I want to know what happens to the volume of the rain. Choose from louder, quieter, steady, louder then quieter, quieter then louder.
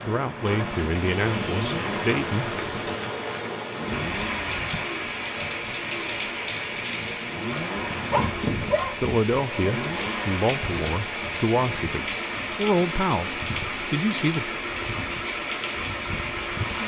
steady.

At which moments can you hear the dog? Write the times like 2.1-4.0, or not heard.
8.1-9.8.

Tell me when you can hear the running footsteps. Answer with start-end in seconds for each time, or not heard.
not heard.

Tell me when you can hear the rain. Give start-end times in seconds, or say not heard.
0.0-16.8.